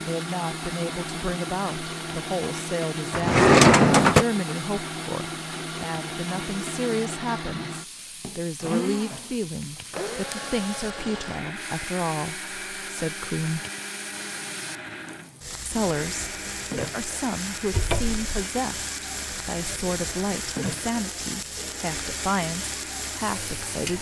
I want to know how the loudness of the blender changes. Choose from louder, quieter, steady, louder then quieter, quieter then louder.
quieter.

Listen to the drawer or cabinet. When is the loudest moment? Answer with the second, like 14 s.
4 s.